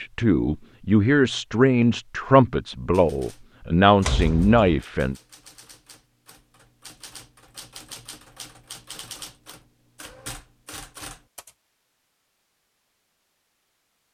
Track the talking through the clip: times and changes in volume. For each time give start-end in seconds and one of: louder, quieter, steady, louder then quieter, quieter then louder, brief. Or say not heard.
0.0-5.2 steady.